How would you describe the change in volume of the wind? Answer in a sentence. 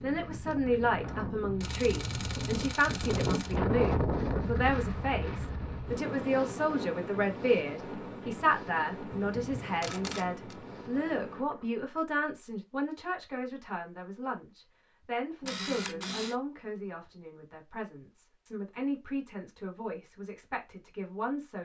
The loudness of the wind goes up, then down.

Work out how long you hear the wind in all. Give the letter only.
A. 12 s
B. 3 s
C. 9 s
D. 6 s
A.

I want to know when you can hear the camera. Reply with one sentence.
The camera can be heard from 1.6 to 3.6 s, from 9.1 to 10.6 s and from 15.4 to 16.4 s.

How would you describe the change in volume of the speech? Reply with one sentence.
The loudness of the speech goes down.